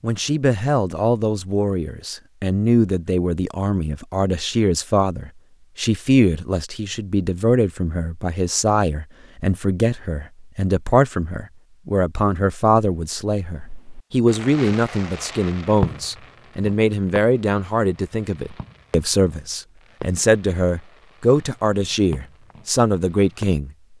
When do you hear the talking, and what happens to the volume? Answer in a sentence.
You can hear the talking from 0.0 to 23.7 s, at a steady volume.